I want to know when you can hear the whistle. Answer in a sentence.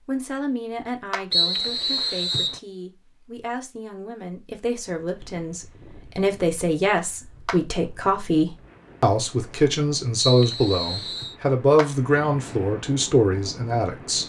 You can hear the whistle from 1.3 to 2.6 s and from 10.2 to 11.3 s.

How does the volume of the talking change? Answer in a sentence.
The loudness of the talking goes up.